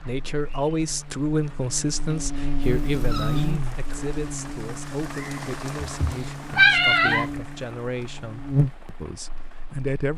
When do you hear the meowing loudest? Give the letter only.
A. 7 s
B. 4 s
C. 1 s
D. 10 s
A.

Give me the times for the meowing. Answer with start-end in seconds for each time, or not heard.
2.6-3.5, 5.8-7.2.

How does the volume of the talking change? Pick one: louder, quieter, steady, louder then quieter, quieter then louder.
quieter.